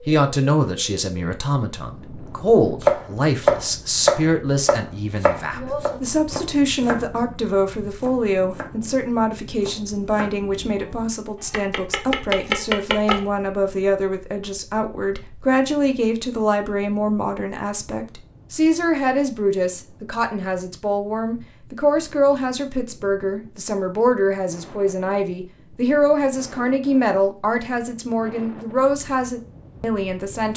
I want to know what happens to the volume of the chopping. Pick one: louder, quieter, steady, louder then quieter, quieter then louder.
quieter then louder.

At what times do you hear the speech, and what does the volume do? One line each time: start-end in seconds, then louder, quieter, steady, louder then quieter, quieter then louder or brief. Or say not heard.
0.1-30.5 steady.